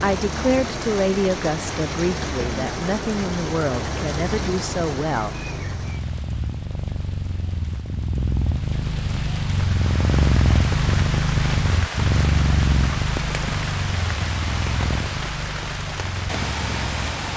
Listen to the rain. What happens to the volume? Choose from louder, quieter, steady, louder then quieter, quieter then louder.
quieter then louder.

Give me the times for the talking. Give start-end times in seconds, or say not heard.
0.0-5.5.